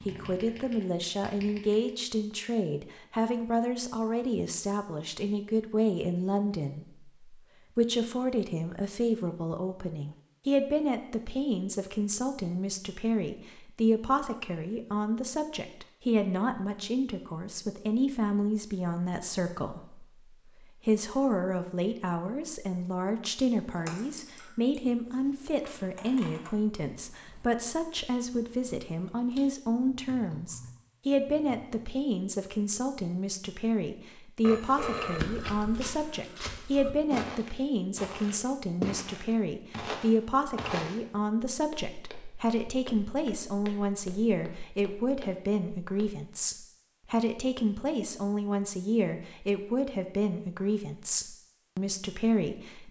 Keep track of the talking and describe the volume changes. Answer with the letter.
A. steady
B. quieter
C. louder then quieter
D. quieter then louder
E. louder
A.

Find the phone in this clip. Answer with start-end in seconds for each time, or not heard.
34.4-35.6.